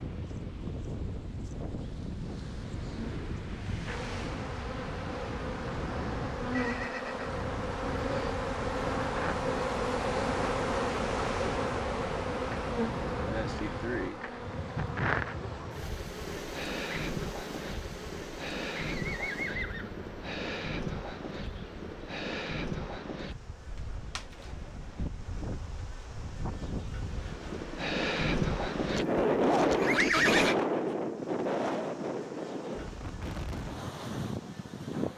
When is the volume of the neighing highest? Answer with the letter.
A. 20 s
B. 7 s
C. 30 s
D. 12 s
C.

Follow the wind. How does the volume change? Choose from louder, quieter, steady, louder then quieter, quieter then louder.
louder.